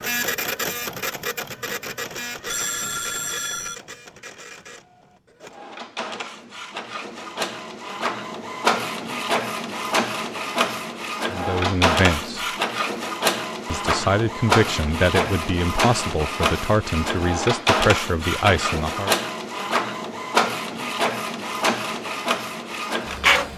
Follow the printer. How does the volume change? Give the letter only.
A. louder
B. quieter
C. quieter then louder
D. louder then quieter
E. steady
A.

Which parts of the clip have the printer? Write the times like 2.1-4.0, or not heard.
0.0-23.5.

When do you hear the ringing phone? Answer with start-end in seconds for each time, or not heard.
2.5-3.8.